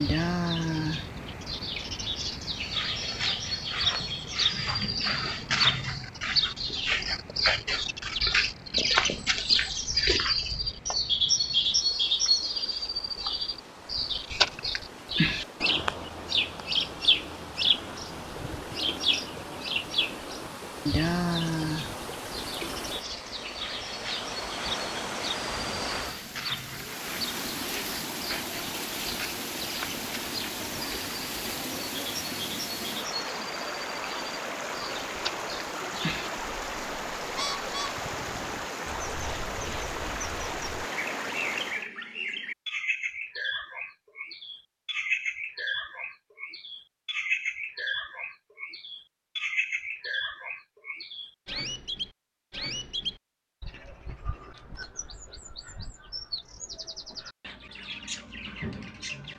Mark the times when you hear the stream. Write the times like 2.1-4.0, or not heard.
0.0-41.9.